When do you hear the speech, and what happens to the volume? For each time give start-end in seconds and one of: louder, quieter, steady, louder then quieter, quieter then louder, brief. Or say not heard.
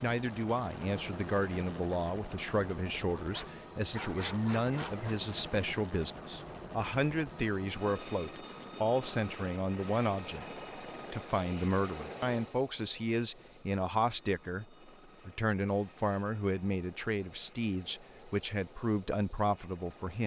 0.0-20.2 steady.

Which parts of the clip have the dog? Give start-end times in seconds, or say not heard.
3.1-5.2.